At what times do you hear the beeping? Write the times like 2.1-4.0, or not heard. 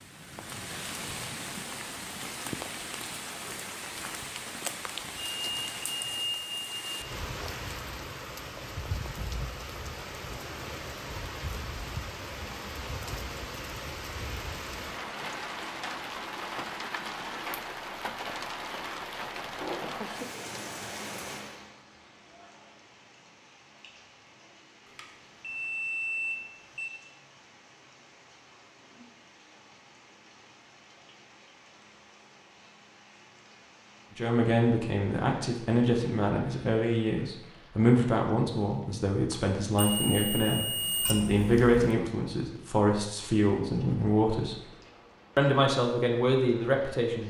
5.2-7.0, 24.9-26.9, 39.8-41.9.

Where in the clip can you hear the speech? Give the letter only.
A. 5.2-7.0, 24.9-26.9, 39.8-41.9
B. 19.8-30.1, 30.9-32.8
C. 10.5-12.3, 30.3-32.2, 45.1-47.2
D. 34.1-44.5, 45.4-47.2
D.